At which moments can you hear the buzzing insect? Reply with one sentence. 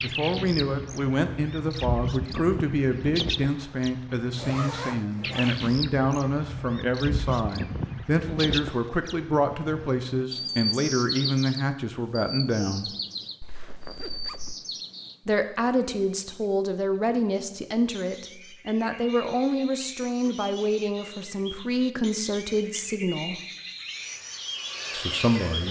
The buzzing insect can be heard from 23.9 to 25.6 s.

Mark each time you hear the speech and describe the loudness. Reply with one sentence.
The speech can be heard from 0.0 to 12.9 s, at a steady volume; from 15.2 to 23.4 s, at a steady volume; and briefly from 24.9 to 25.6 s.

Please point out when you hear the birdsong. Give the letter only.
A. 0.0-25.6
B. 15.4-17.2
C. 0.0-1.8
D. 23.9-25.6
A.